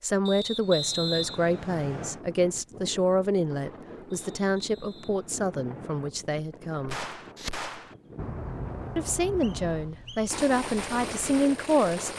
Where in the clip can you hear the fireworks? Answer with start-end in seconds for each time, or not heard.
6.8-12.1.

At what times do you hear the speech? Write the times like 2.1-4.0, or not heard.
0.0-7.0, 8.9-12.1.